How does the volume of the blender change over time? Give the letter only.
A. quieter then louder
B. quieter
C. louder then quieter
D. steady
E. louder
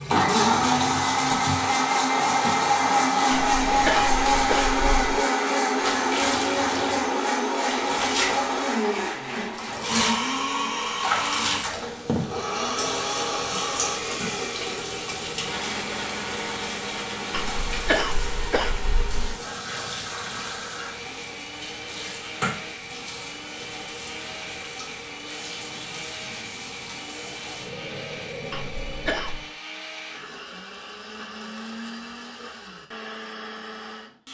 B.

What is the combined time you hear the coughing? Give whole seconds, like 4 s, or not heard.
5 s.